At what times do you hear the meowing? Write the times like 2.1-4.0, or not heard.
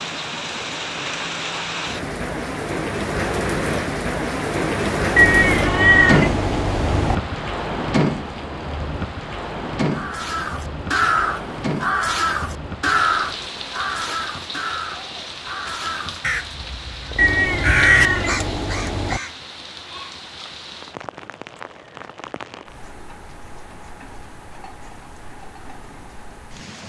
5.2-7.2, 17.1-19.2.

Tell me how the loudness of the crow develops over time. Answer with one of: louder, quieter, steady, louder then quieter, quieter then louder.
quieter then louder.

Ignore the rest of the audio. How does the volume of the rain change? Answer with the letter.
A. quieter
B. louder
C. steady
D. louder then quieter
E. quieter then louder
A.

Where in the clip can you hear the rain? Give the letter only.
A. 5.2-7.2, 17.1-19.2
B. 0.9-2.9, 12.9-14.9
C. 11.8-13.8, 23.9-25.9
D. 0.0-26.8
D.